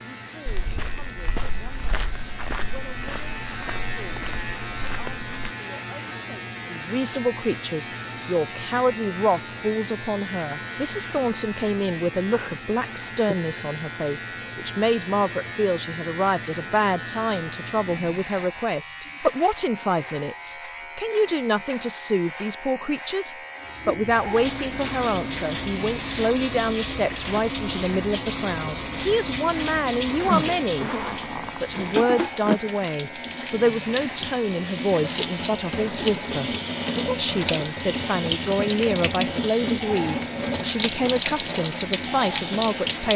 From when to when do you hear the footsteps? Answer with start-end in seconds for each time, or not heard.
0.5-5.5.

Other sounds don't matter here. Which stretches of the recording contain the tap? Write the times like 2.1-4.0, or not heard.
23.6-43.1.